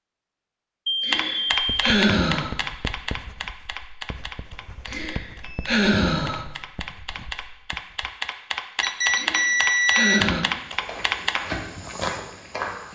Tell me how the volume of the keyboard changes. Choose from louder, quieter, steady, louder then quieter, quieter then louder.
quieter then louder.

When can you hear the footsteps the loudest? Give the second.
12 s.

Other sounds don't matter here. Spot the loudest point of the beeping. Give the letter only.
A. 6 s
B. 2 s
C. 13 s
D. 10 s
D.